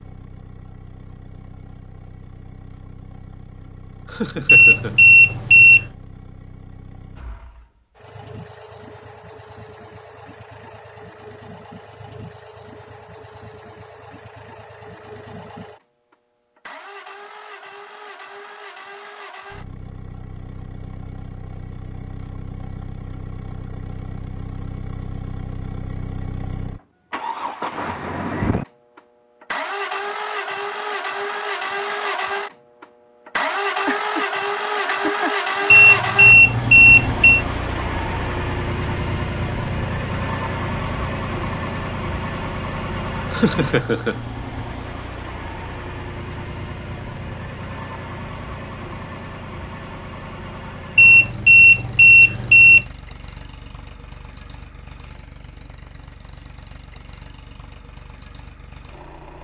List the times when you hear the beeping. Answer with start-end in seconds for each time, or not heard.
4.5-5.8, 35.7-37.5, 51.0-52.9.